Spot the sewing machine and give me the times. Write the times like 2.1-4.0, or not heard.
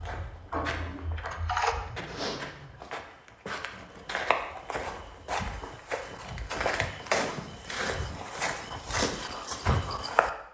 0.0-1.8.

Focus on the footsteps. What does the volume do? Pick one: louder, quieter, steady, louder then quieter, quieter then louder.
louder.